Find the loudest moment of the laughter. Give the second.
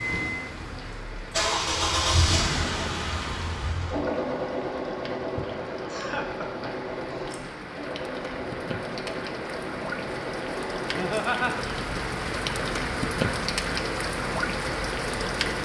11 s.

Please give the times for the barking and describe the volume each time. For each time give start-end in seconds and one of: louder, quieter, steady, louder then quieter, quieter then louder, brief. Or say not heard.
not heard.